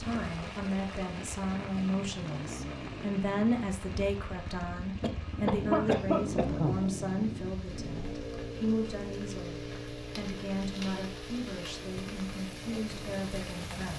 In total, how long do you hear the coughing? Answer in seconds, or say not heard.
2 s.